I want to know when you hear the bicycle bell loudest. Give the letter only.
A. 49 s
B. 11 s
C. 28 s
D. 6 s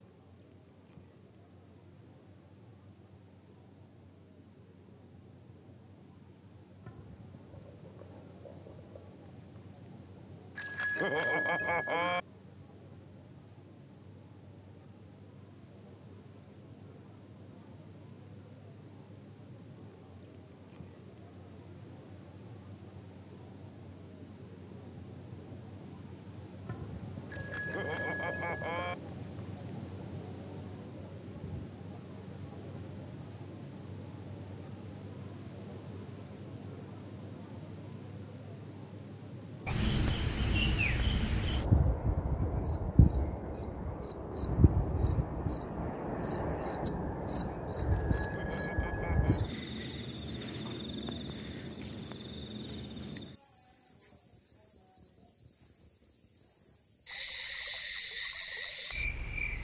B.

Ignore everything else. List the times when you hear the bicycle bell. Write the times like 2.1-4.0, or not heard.
10.6-12.2, 27.3-28.9, 47.9-49.4.